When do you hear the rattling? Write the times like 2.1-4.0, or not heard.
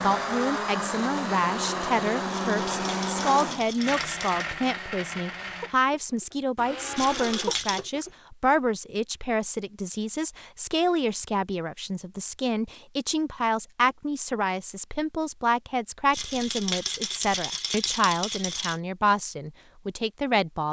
2.3-4.5, 7.0-7.9, 16.1-18.8.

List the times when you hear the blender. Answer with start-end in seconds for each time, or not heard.
0.0-8.1.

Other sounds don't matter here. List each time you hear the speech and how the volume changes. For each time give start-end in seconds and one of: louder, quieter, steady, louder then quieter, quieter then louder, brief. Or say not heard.
0.0-20.6 steady.